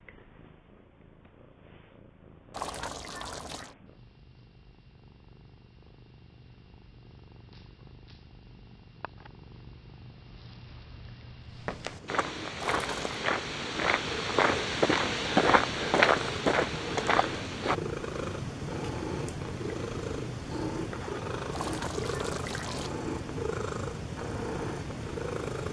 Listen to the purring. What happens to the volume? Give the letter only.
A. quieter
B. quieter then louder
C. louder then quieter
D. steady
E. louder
E.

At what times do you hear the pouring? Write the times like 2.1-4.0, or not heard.
2.5-3.8, 12.6-13.2, 21.5-22.9.